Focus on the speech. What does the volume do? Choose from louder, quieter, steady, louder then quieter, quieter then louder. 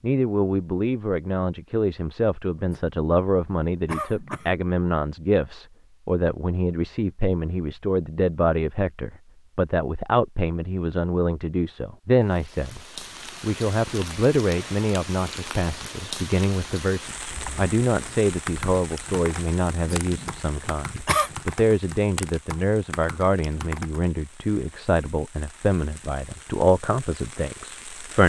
steady.